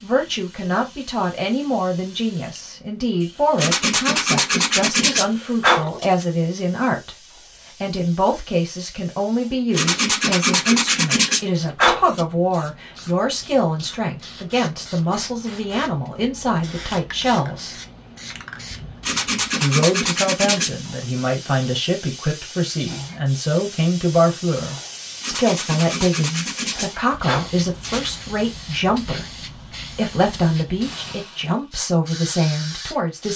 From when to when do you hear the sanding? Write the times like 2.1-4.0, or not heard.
3.5-6.2, 9.7-12.2, 19.0-20.8, 25.2-28.1.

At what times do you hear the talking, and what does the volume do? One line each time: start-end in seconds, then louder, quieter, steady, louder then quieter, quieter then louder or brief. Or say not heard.
0.0-17.8 steady
19.6-33.3 steady.